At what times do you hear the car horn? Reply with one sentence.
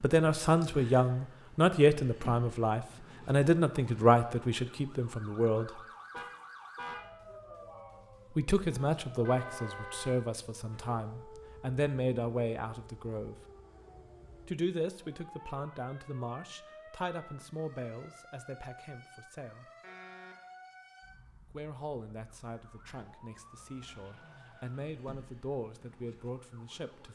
You can hear the car horn from 6.1 to 7.5 s, from 9.2 to 10.2 s and from 19.8 to 20.4 s.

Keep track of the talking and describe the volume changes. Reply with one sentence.
The loudness of the talking goes down.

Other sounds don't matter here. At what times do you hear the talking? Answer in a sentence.
The talking can be heard from 0.0 to 5.7 s, from 8.3 to 13.3 s, from 14.4 to 19.7 s and from 21.5 to 27.1 s.